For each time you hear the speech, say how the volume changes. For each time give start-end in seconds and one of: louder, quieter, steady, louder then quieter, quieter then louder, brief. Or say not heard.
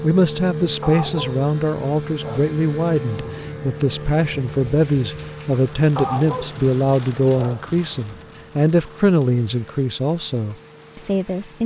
0.0-11.6 steady.